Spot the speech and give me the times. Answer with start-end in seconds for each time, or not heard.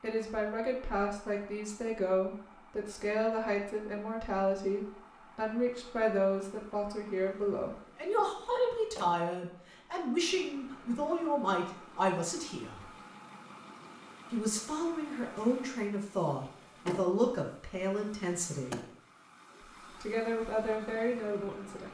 0.0-12.9, 14.3-18.8, 19.6-21.8.